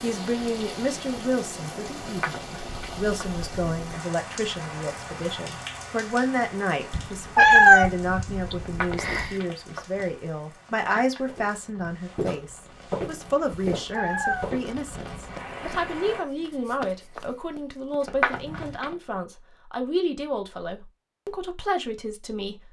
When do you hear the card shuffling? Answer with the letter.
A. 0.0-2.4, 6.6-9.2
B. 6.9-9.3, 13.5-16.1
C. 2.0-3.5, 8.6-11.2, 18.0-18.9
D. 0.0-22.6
C.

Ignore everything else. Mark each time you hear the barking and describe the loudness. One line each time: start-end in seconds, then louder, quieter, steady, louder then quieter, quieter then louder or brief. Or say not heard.
not heard.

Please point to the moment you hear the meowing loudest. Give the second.
8 s.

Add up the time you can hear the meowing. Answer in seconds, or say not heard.
5 s.